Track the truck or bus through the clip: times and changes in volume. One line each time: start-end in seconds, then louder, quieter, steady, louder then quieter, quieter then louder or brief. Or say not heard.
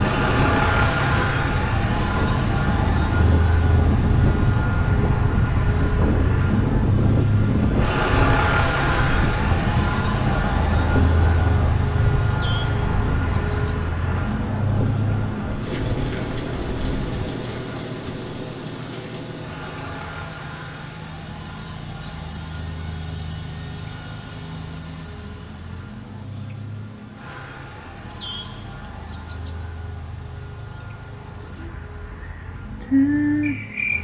0.0-33.9 quieter.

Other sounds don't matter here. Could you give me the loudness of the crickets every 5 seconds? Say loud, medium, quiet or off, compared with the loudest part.
quiet, medium, loud, loud, loud, loud, loud.